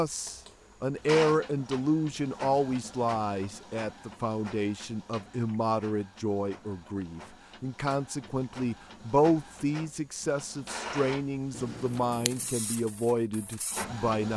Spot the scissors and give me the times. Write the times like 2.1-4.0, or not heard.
11.5-12.6.